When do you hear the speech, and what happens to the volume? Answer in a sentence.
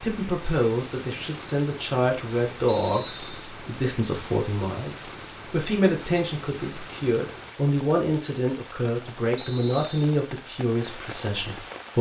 You can hear the speech from 0.0 to 11.9 s, at a steady volume.